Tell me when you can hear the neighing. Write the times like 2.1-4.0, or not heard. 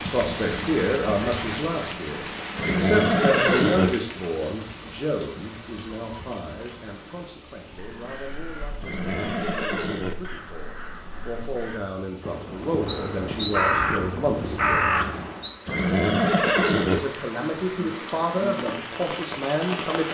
2.5-3.9, 8.8-10.2, 15.7-17.0.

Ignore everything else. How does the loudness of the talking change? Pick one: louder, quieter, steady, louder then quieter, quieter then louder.
quieter then louder.